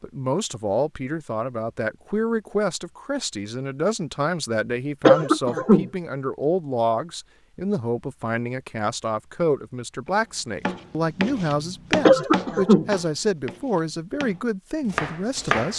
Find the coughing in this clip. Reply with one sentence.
The coughing can be heard from 5.0 to 5.9 s and from 12.1 to 12.9 s.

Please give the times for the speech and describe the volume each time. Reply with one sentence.
You can hear the speech from 0.0 to 15.7 s, at a steady volume.